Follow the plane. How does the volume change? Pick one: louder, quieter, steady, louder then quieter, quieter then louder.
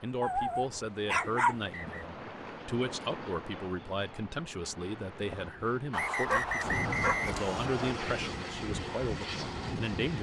louder.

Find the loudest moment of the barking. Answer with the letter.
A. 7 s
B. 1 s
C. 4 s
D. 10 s
B.